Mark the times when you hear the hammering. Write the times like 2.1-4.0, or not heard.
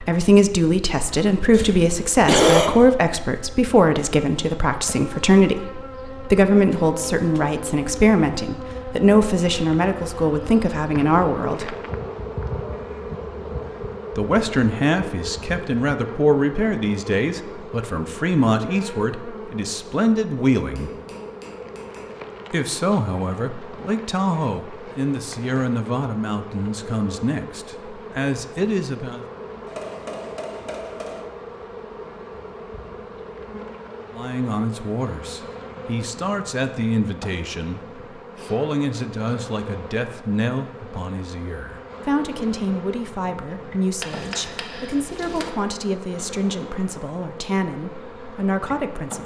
6.7-7.9, 20.8-22.2, 29.6-31.3, 44.0-45.5.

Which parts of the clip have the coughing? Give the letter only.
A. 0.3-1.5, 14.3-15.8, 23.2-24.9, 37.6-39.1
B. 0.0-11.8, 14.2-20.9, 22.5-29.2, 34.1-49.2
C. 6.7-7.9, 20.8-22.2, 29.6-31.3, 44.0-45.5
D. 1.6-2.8
D.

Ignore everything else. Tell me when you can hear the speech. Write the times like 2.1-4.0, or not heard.
0.0-11.8, 14.2-20.9, 22.5-29.2, 34.1-49.2.